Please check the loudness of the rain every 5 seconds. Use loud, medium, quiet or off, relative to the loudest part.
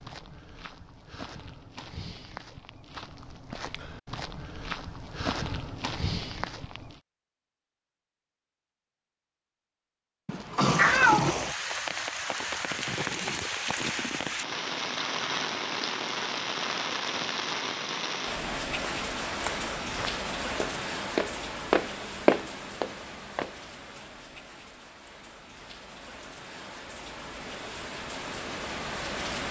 off, off, loud, loud, medium, medium.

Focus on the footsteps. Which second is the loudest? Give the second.
22 s.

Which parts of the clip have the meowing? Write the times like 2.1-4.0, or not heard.
10.2-11.4.